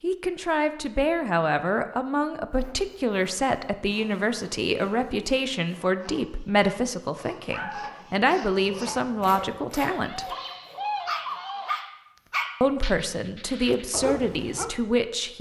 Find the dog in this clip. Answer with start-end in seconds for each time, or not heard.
7.3-14.7.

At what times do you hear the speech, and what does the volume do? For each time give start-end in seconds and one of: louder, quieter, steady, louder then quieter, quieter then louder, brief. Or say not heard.
0.0-10.2 steady
12.6-15.3 brief.